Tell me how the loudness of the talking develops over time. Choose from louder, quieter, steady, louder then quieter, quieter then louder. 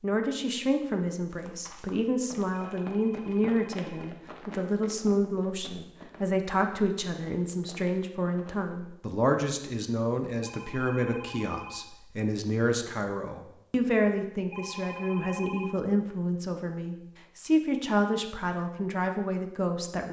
steady.